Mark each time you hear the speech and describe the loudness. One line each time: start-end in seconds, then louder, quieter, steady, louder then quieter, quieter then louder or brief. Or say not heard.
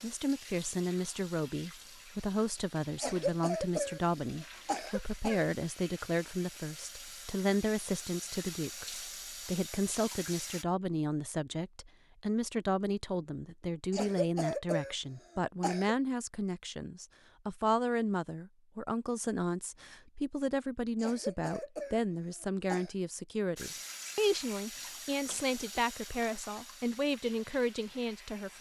0.0-28.5 steady.